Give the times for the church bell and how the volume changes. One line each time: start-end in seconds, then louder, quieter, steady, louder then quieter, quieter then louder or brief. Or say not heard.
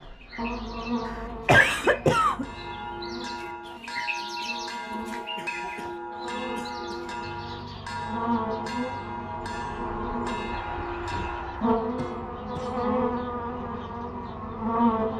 2.3-12.4 steady.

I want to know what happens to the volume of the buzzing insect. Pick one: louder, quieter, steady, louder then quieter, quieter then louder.
quieter then louder.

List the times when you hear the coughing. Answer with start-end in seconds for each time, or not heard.
1.1-2.5, 5.3-5.9, 6.5-7.0, 11.9-12.8.